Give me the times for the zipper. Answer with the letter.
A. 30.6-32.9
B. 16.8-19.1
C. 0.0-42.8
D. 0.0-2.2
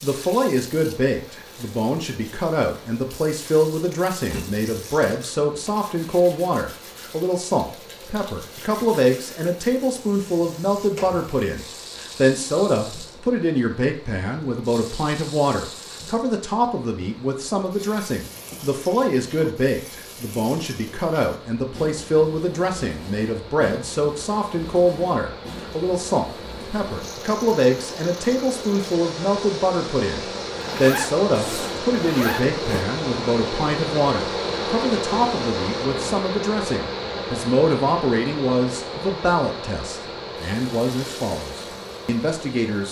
A.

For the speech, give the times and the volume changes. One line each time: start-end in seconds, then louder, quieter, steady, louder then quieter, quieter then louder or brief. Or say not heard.
0.0-42.8 steady.